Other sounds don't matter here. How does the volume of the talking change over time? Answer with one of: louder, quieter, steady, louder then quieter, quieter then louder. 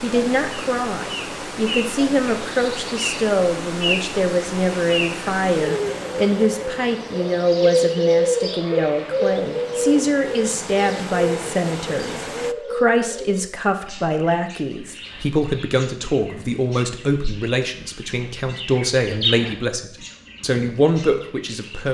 steady.